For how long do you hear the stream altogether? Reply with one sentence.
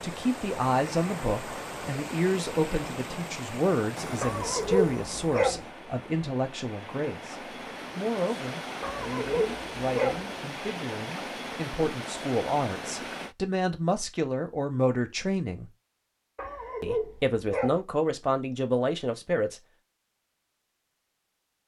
You can hear the stream for 13 seconds altogether.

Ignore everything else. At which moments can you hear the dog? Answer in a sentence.
You can hear the dog from 4.2 to 5.7 s, from 8.8 to 10.2 s and from 16.4 to 17.8 s.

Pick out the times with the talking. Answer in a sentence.
You can hear the talking from 0.0 to 15.7 s and from 16.8 to 19.6 s.